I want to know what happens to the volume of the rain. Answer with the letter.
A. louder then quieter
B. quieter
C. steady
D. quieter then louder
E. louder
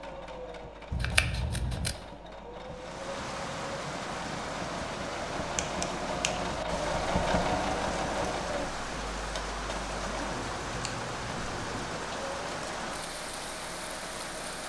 C.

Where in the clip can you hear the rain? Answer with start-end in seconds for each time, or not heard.
2.6-14.6.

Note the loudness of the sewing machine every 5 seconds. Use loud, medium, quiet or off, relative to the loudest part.
medium, loud, medium.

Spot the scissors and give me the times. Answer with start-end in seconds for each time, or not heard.
0.9-1.9, 5.5-6.5, 10.3-11.9.